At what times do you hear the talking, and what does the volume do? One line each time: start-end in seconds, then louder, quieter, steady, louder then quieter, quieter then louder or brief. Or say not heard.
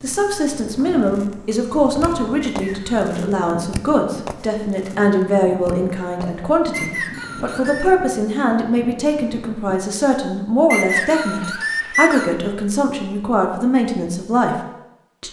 0.0-14.6 steady.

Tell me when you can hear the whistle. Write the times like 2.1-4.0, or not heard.
2.5-2.9, 6.7-7.8, 10.7-12.3.